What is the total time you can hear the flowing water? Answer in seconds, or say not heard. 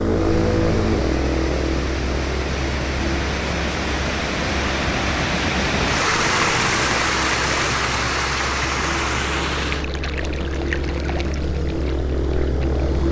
13 s.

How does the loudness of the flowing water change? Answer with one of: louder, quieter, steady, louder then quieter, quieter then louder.
louder then quieter.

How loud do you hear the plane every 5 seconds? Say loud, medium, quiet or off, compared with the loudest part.
loud, medium, loud.